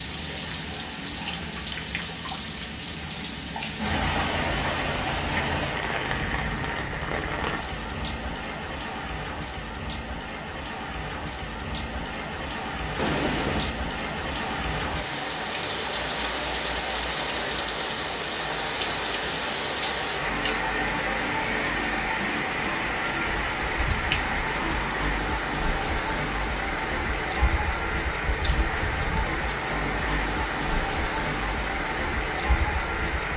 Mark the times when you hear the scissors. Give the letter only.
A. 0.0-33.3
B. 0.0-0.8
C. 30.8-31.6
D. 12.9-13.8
D.